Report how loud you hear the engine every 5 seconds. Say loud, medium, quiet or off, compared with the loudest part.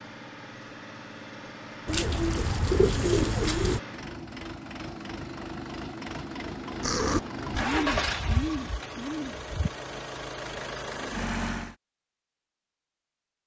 medium, loud, loud.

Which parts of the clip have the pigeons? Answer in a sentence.
You can hear the pigeons from 1.9 to 3.8 s and from 6.8 to 9.7 s.